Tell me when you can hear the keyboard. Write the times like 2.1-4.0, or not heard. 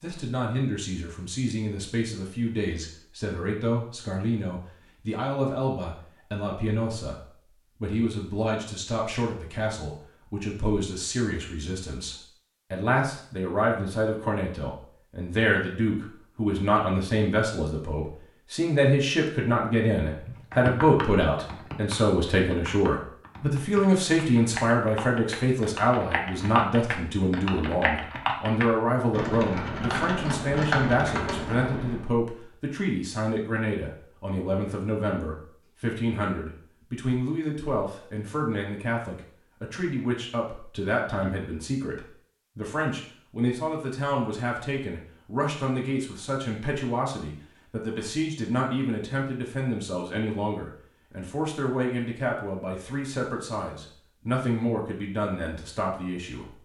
20.1-32.0.